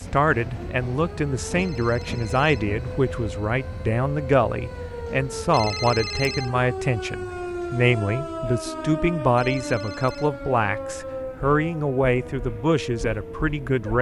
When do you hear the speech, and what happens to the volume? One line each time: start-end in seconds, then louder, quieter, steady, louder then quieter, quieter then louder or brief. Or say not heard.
0.0-13.9 steady.